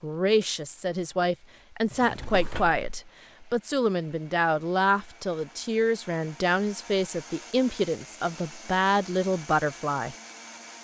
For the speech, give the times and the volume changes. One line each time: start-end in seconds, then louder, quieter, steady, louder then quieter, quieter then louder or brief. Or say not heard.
0.0-10.2 steady.